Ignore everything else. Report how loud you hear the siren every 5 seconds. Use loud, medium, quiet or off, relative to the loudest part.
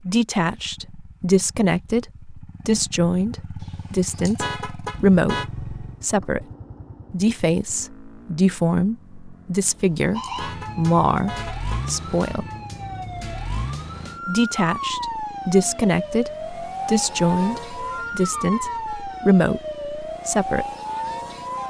off, off, loud, loud, loud.